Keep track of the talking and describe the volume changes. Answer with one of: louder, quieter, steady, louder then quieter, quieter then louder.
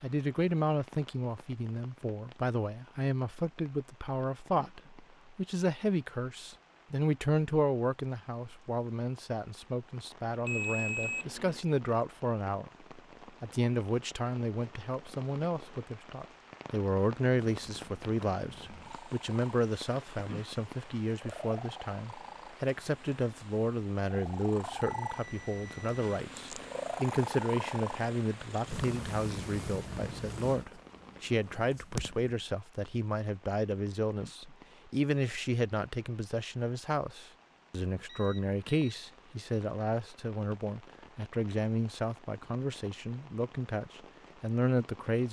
steady.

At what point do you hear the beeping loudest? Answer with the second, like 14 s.
11 s.